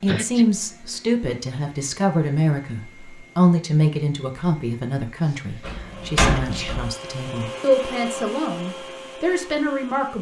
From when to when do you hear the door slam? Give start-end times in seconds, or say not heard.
5.6-6.9.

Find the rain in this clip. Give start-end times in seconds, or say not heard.
not heard.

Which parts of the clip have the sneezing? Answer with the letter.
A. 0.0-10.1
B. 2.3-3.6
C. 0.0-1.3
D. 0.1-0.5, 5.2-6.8
D.